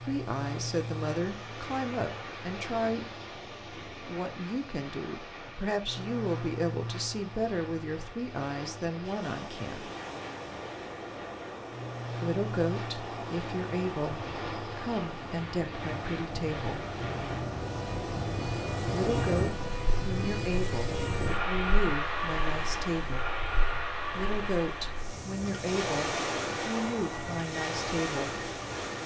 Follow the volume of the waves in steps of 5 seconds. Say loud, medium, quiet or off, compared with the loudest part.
medium, medium, medium, loud, medium, loud.